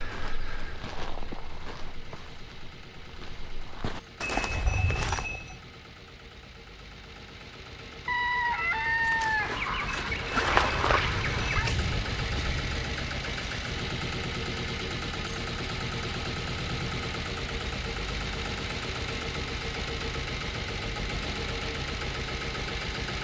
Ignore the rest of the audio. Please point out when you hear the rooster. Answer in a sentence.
The rooster can be heard from 8.1 to 11.8 s.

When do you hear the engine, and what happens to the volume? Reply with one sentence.
The engine can be heard from 0.0 to 23.1 s, getting louder.